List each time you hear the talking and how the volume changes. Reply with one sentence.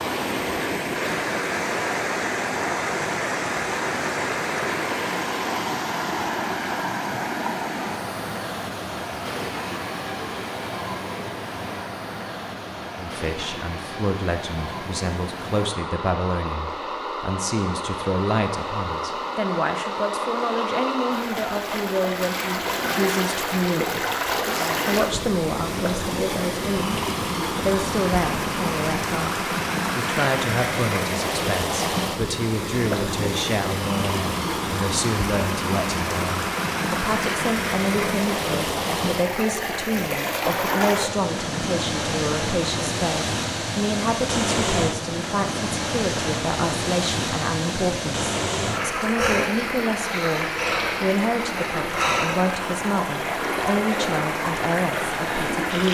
You can hear the talking from 12.9 to 55.8 s, at a steady volume.